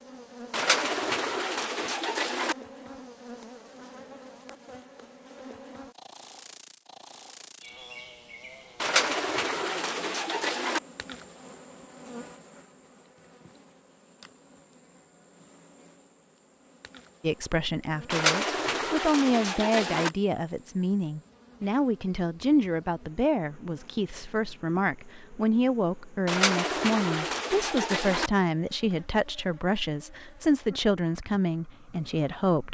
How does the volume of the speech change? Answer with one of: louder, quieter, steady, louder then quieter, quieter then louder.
steady.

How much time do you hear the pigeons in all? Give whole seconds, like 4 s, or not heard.
8 s.